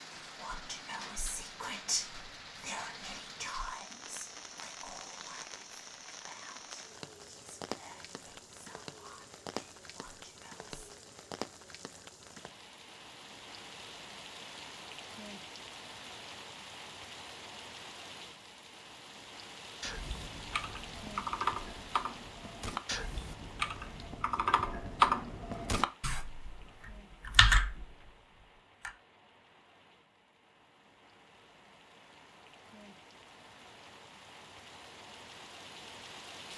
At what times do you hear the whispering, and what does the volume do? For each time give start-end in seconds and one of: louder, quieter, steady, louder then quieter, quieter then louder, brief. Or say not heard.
0.2-10.7 quieter.